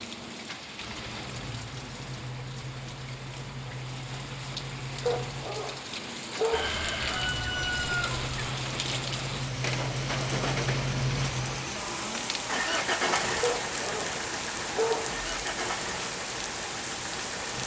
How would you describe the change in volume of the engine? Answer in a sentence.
The volume of the engine goes up, then down.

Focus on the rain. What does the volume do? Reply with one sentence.
The loudness of the rain goes up.